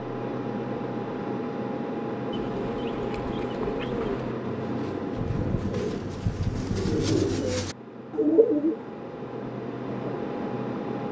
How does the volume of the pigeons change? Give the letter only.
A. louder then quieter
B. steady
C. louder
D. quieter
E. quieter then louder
C.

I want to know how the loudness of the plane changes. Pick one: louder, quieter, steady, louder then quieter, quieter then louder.
quieter then louder.